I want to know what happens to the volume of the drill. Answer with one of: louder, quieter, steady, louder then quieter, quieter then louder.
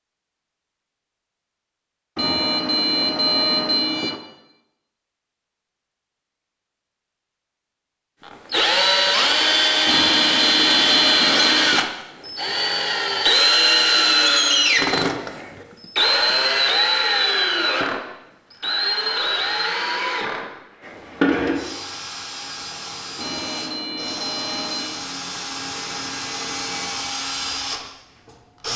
quieter.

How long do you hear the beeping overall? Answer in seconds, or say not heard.
6 s.